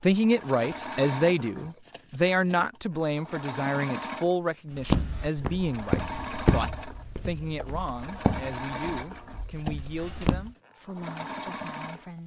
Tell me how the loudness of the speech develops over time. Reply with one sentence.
The loudness of the speech goes down.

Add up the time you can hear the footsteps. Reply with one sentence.
The footsteps can be heard for 6 seconds in total.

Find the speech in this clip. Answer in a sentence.
The speech can be heard from 0.0 to 12.2 s.